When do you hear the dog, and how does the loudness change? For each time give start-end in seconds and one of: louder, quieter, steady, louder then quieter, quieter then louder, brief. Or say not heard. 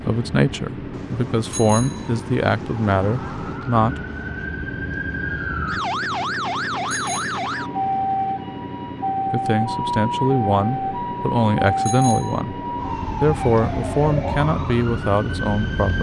not heard.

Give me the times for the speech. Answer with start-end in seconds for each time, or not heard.
0.0-4.0, 9.3-15.9.